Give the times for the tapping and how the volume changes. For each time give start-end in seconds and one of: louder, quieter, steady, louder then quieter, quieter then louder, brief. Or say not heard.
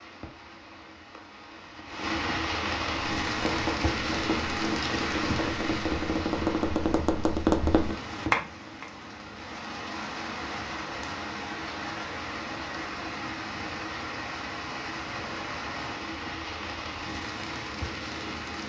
2.9-8.8 louder.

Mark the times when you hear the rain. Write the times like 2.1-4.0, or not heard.
0.0-18.6.